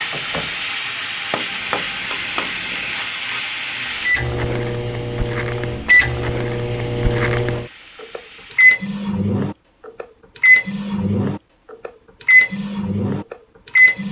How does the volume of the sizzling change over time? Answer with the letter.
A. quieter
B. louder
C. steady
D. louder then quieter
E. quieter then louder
A.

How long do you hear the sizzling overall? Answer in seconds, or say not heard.
9 s.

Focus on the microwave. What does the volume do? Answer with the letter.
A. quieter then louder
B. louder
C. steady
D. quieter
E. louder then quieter
B.